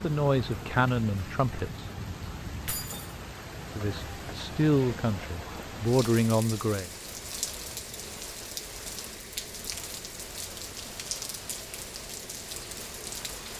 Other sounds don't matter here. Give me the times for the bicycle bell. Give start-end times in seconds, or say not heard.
not heard.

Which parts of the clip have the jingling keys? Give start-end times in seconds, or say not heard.
2.6-3.1.